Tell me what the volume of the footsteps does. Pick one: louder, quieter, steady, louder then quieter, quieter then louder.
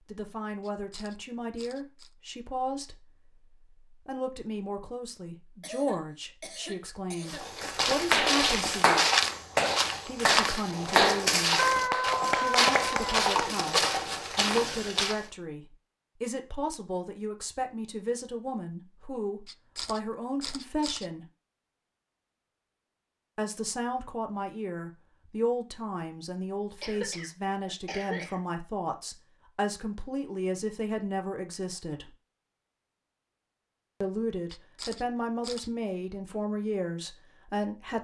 steady.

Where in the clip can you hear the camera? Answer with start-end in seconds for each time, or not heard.
0.6-2.1, 19.4-21.1, 34.5-35.7.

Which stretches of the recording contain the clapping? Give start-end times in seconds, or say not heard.
7.6-13.6.